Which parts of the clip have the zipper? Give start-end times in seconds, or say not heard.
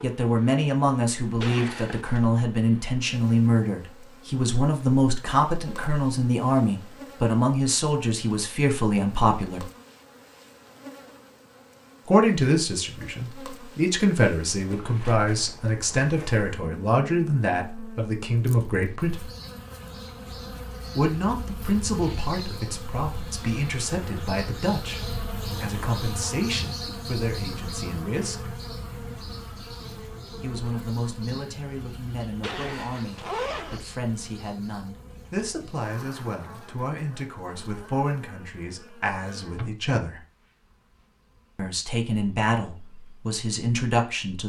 1.4-2.2, 32.4-33.8.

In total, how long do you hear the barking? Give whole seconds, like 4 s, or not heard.
not heard.